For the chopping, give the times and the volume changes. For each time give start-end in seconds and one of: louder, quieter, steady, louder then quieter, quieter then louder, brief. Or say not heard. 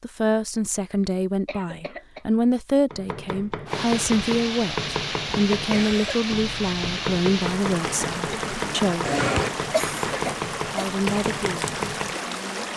2.9-12.2 steady.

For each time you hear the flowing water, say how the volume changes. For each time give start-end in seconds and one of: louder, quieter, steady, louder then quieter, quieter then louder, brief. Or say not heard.
3.6-12.7 steady.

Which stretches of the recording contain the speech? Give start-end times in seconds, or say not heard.
0.0-9.1, 10.7-12.7.